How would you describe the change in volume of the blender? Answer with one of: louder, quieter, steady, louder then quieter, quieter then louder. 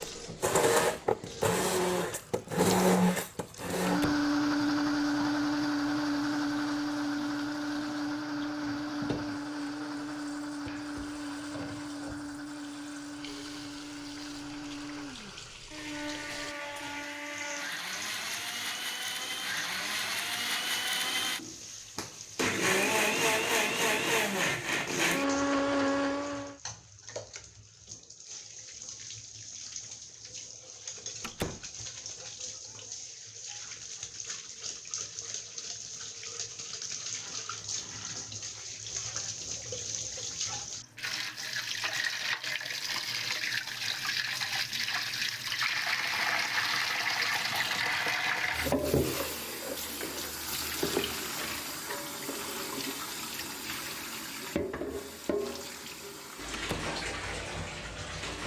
quieter then louder.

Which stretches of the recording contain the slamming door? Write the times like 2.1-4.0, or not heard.
3.9-4.3, 31.2-31.7, 56.5-57.0.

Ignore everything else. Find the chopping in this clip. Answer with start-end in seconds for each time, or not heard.
not heard.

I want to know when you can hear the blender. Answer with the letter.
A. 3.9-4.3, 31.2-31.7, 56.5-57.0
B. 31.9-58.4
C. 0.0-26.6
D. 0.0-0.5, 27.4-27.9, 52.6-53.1
C.